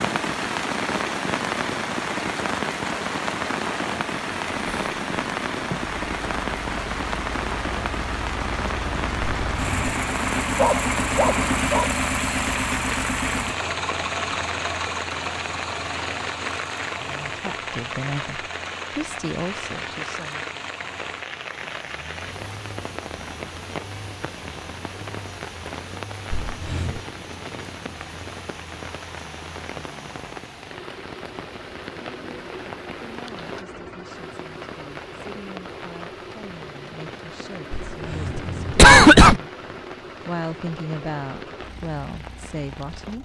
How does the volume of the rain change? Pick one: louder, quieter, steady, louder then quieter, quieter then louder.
quieter.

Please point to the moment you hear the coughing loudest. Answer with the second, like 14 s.
39 s.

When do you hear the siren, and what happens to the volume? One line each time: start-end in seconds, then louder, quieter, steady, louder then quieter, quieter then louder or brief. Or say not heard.
not heard.